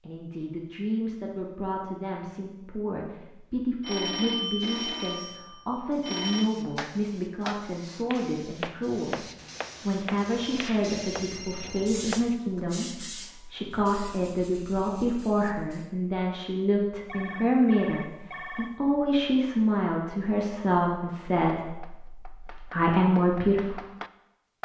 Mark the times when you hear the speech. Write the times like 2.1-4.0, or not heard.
0.0-23.8.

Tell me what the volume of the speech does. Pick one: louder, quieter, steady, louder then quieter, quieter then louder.
louder.